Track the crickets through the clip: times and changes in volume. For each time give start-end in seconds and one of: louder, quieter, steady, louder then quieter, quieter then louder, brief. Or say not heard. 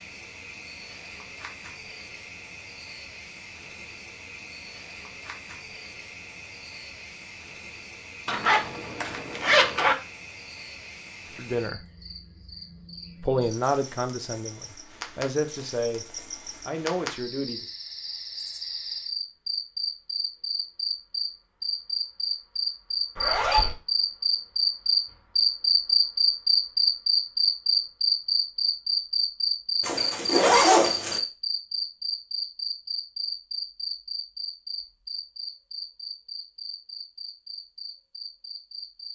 0.0-39.1 louder then quieter.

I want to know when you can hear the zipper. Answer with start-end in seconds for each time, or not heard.
8.2-9.9, 23.1-23.8, 29.8-31.2.